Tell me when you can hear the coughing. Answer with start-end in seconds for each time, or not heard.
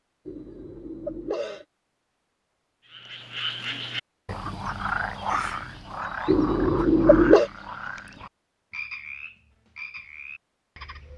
0.2-1.6, 6.2-7.5.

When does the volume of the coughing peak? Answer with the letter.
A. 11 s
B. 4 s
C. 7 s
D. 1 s
C.